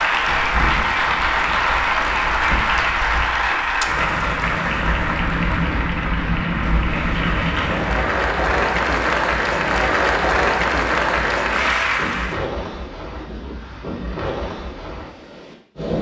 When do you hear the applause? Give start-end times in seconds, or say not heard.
0.0-12.4.